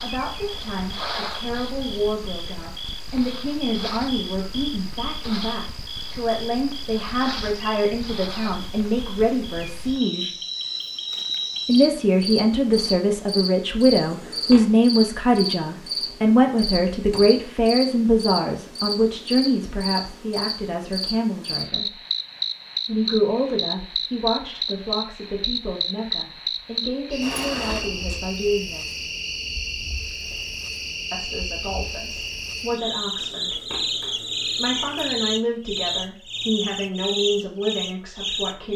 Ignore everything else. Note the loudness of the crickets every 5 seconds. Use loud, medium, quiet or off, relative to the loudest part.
medium, medium, loud, loud, loud, loud, loud, loud.